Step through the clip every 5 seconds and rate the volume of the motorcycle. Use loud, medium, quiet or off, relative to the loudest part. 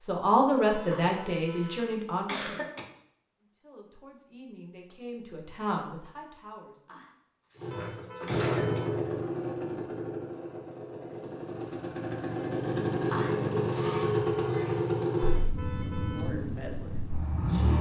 off, loud, loud, loud.